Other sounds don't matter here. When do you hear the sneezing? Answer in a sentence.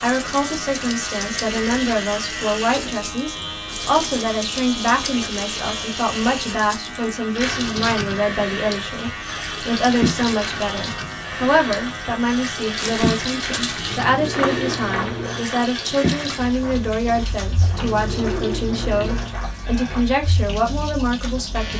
The sneezing can't be heard in this clip.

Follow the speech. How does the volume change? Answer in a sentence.
The loudness of the speech stays about the same.